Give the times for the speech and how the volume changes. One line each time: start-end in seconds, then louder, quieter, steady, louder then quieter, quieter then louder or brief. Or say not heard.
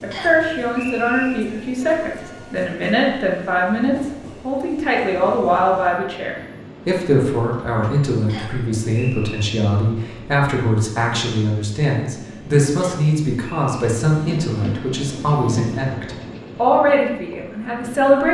0.0-18.2 steady.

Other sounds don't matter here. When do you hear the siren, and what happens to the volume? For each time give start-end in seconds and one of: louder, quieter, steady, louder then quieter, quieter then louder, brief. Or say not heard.
not heard.